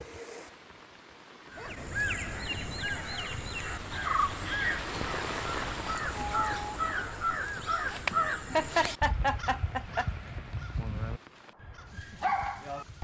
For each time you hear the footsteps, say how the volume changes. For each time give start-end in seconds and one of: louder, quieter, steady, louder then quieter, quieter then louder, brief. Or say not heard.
not heard.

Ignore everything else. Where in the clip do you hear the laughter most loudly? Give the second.
9 s.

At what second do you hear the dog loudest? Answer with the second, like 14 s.
12 s.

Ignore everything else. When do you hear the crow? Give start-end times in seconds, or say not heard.
1.5-12.9.